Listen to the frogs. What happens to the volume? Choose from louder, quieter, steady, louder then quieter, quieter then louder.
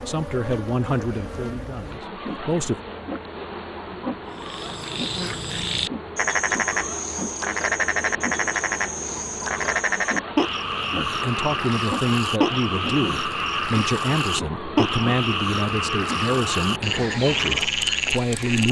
steady.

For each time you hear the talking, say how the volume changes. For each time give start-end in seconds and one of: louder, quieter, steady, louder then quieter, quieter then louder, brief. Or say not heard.
0.1-2.8 brief
10.9-18.6 steady.